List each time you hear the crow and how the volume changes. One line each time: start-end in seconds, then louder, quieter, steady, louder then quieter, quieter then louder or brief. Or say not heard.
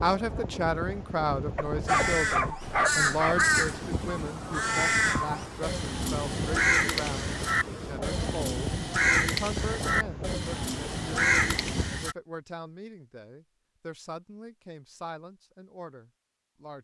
1.9-12.2 steady.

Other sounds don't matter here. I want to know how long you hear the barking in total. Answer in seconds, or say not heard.
2 s.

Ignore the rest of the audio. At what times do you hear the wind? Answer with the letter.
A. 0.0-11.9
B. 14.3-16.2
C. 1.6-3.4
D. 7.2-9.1
A.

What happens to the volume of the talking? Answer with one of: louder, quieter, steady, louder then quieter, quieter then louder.
quieter.